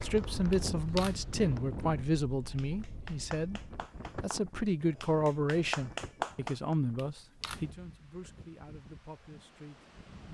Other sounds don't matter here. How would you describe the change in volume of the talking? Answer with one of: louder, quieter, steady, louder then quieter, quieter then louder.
quieter.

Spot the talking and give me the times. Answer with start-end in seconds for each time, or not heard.
0.0-3.6, 4.2-10.2.